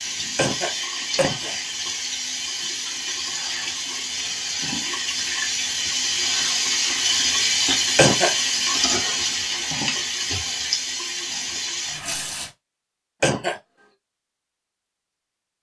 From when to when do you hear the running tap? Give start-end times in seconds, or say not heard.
0.0-12.5.